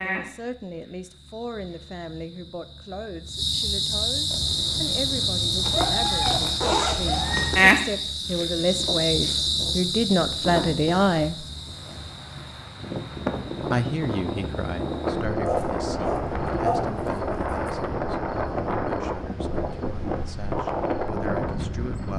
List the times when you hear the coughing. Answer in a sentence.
The coughing can't be heard in this clip.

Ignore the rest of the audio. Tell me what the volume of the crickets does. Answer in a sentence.
The loudness of the crickets goes up, then down.